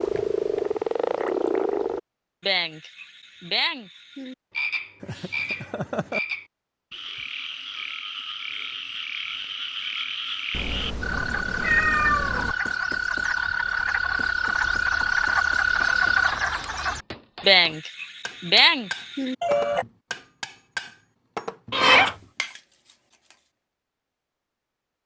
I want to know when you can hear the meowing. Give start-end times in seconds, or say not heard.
5.0-6.2, 10.5-12.6, 21.7-22.1.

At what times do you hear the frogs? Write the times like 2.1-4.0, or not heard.
0.0-19.9.